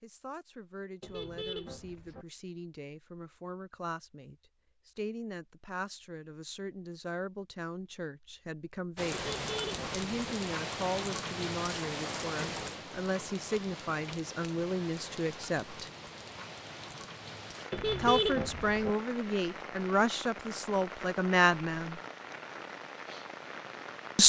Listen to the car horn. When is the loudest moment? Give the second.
18 s.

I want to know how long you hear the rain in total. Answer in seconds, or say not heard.
15 s.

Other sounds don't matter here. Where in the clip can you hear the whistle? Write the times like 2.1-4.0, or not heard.
not heard.